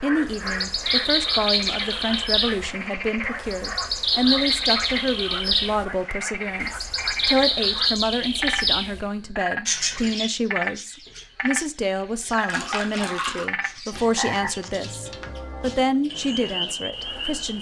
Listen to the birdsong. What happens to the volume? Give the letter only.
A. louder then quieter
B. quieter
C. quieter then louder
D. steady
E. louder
B.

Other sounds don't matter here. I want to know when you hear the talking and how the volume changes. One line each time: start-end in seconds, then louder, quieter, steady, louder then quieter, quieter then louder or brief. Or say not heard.
0.0-17.5 steady.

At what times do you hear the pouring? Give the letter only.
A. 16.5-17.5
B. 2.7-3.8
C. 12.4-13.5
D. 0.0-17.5
C.